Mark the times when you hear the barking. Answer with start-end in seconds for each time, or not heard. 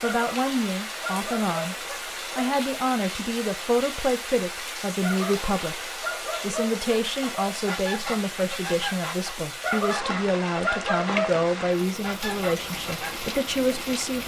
0.0-2.5, 5.0-7.7, 9.6-11.4.